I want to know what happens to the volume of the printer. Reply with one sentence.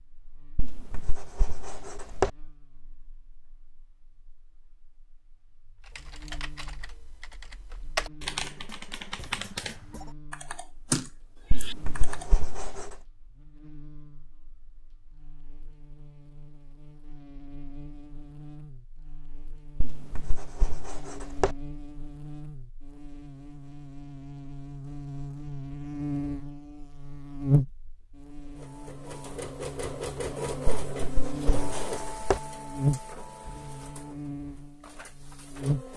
The loudness of the printer goes down.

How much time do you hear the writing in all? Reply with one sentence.
The writing can be heard for 7 seconds in total.